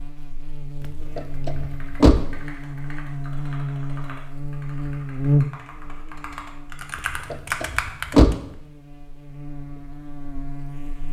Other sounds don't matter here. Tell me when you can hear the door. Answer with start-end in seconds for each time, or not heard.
1.1-2.3, 7.0-8.4.